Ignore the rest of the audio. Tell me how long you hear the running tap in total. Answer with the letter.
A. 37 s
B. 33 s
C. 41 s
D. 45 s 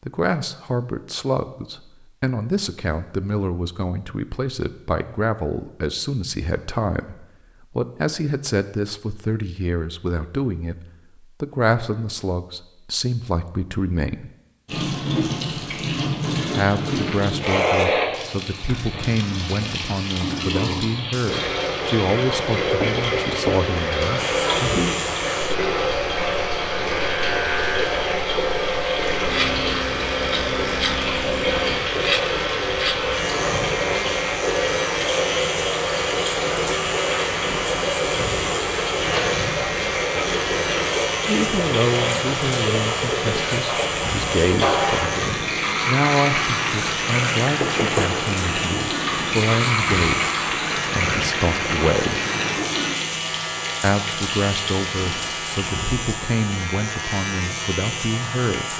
C.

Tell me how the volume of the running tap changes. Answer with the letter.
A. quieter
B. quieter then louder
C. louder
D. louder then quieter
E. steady
E.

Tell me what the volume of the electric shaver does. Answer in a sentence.
The loudness of the electric shaver stays about the same.